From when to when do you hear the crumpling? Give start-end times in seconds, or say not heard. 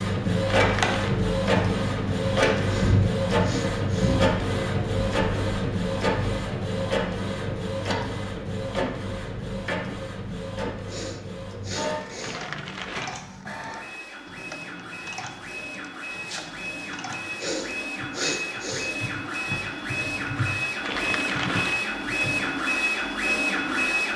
0.6-1.0, 12.2-13.1, 20.8-21.9.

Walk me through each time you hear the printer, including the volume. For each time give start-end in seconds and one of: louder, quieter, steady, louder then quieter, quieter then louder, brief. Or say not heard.
0.0-24.1 quieter then louder.